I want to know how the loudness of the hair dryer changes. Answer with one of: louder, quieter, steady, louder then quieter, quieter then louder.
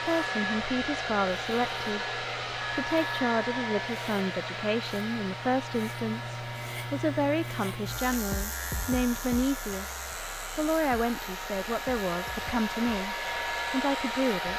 quieter then louder.